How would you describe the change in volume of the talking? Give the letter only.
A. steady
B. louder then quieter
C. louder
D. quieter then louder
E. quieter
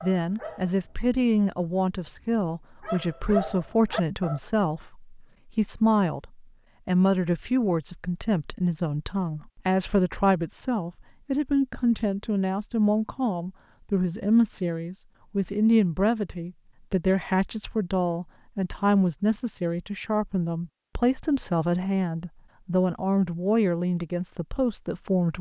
A.